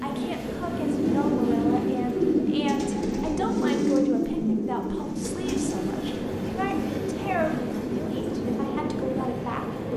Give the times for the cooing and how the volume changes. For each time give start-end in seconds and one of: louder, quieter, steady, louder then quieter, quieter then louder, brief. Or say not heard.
0.7-9.3 quieter.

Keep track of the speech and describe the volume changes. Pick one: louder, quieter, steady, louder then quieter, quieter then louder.
steady.